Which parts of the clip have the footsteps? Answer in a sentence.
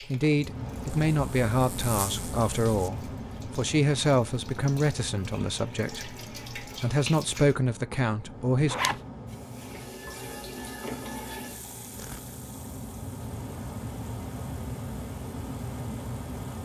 The footsteps can't be heard in this clip.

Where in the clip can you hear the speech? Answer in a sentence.
The speech can be heard from 0.1 to 8.8 s.